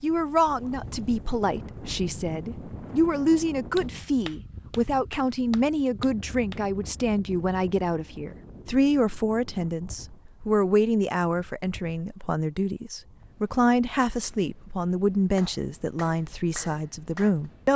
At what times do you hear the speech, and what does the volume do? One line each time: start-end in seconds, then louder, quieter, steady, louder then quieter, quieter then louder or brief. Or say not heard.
0.0-17.7 steady.